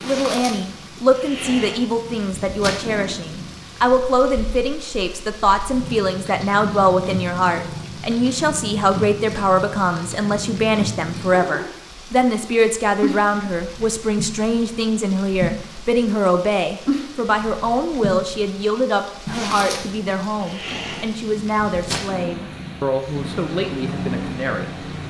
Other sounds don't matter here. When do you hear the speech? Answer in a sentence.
The speech can be heard from 0.0 to 24.9 s.